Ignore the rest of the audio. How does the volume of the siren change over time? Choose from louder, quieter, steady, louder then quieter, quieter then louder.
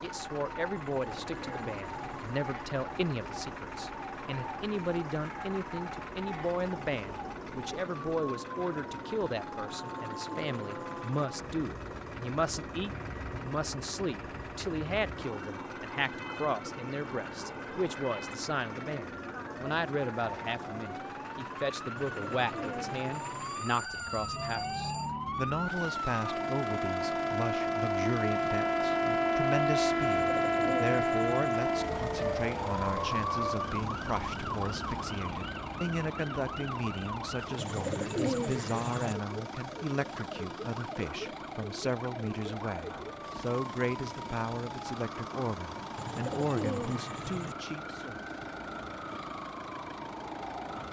louder then quieter.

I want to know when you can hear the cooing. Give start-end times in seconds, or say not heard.
0.9-2.3, 9.7-11.2, 21.9-23.6, 30.0-31.6, 37.5-39.1, 46.0-47.5.